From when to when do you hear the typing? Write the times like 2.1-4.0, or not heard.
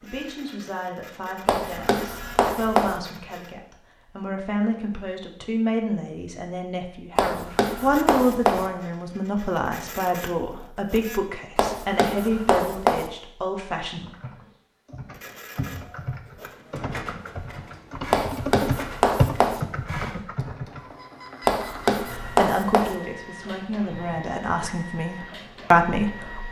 13.9-20.9.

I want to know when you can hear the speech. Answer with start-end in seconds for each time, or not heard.
0.0-14.1, 22.3-26.4.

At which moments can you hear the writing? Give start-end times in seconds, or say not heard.
1.4-3.0, 7.2-8.7, 11.6-13.1, 18.1-19.6, 21.4-22.9.